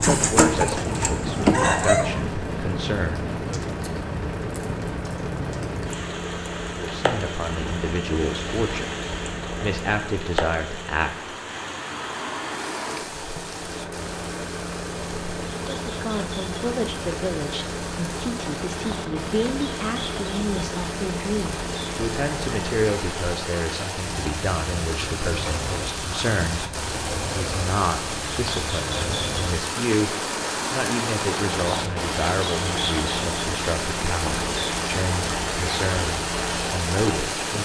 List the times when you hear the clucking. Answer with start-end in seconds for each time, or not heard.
0.0-2.2.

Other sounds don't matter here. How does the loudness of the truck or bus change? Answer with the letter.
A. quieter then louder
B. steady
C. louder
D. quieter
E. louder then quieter
B.